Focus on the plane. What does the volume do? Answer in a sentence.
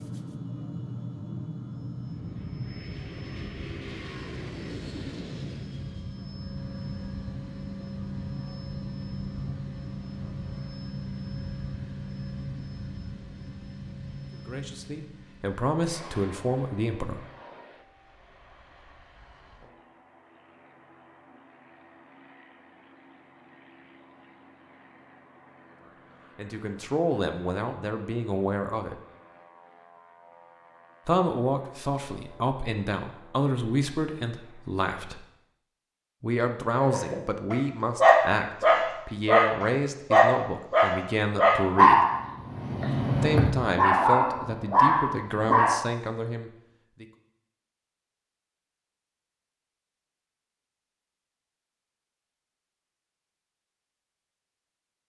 The volume of the plane goes down.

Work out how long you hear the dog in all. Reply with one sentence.
You can hear the dog for 9 seconds altogether.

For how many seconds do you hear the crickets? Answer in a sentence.
You can't hear the crickets here.